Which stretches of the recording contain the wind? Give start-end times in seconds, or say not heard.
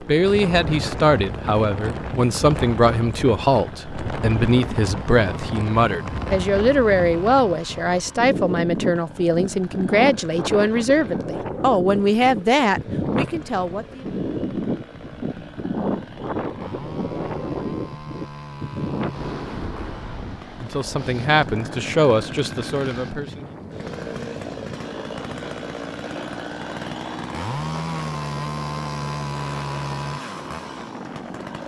0.0-31.6.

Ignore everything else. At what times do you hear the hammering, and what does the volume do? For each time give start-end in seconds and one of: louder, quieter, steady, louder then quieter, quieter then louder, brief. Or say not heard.
not heard.